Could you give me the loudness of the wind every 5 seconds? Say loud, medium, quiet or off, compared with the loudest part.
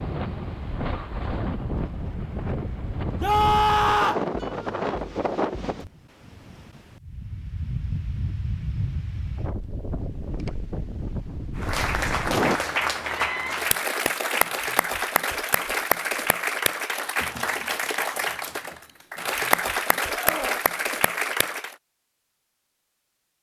loud, loud, loud, off, off.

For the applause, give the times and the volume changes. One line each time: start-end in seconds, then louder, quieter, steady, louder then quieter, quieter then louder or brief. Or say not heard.
11.6-21.8 steady.